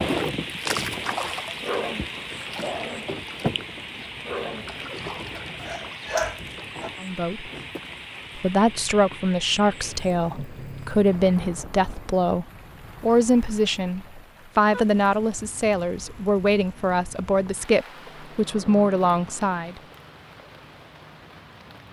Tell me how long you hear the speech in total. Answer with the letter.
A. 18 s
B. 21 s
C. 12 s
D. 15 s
C.